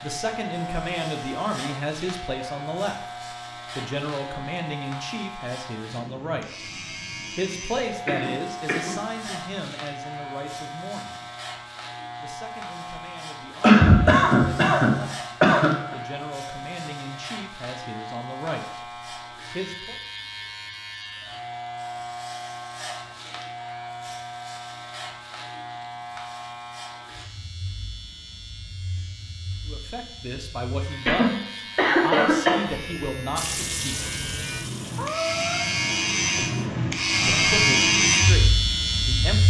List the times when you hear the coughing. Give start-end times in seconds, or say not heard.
8.1-9.0, 13.6-15.9, 31.1-32.7.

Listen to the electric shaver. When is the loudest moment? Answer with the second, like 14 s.
38 s.